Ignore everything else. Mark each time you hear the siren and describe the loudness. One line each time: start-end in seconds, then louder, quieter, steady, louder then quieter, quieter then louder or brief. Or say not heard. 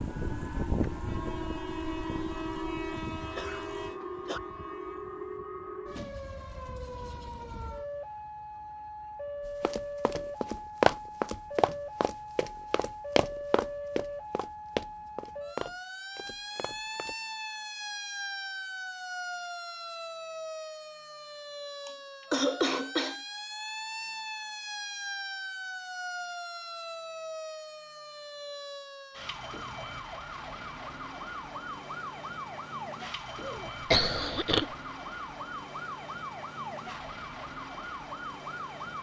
0.0-38.9 steady.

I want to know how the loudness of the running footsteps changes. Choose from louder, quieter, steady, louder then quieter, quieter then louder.
quieter.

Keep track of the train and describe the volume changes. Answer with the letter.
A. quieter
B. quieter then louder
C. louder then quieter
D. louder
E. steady
A.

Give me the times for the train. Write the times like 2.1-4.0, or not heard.
0.0-5.2.